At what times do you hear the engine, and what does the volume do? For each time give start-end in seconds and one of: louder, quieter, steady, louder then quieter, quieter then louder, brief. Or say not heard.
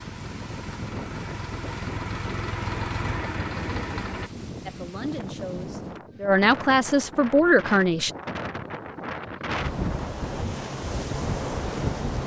0.0-4.3 louder.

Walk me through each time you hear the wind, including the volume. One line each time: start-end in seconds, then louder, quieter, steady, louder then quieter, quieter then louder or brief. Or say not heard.
0.0-12.2 louder.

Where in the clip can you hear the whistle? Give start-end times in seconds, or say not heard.
not heard.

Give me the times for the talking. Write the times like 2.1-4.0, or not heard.
4.7-8.1.